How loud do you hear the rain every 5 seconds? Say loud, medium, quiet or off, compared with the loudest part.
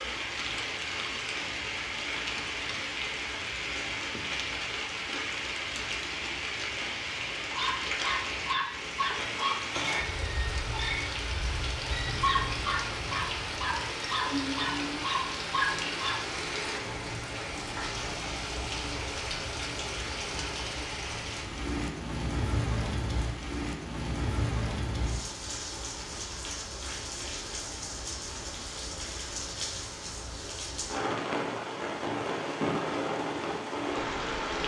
loud, loud, loud, loud, loud, medium, loud.